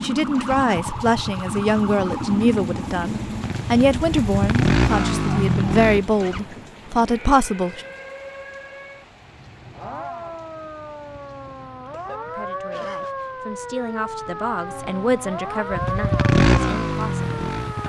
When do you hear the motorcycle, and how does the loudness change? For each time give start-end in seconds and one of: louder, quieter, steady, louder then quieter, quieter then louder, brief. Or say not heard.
0.1-6.4 louder
15.7-17.8 brief.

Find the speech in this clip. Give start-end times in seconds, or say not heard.
0.0-7.8, 12.2-17.2.